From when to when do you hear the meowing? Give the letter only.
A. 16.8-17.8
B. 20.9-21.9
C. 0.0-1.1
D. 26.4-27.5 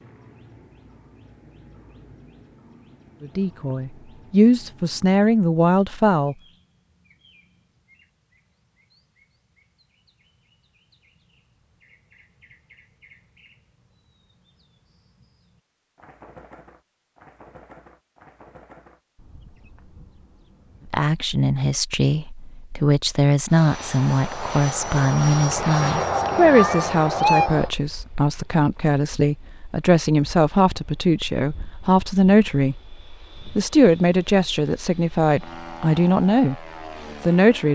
D.